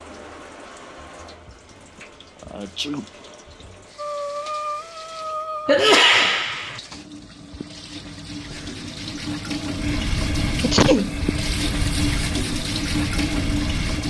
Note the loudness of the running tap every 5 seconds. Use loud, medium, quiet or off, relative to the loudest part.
quiet, medium, loud.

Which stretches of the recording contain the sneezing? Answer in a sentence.
You can hear the sneezing from 1.9 to 3.0 s, from 5.7 to 6.8 s and from 10.6 to 11.2 s.